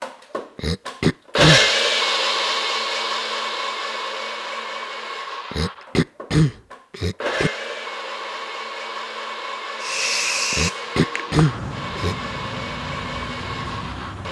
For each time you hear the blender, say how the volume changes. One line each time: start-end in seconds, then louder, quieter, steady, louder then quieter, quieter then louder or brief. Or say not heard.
0.0-14.2 quieter.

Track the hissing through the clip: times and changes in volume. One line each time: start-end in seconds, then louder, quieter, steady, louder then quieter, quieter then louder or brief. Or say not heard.
9.8-14.2 quieter.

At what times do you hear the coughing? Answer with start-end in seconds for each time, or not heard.
0.6-1.6, 5.5-7.5, 10.5-12.2.